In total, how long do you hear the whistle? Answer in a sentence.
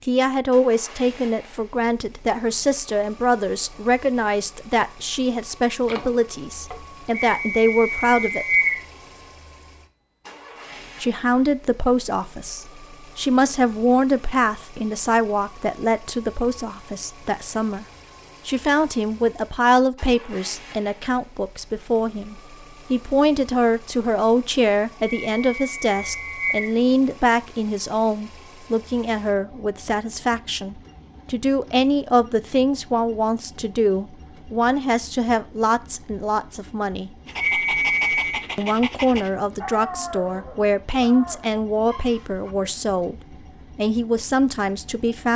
The whistle can be heard for 4 seconds in total.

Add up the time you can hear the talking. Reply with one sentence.
The talking can be heard for 40 seconds in total.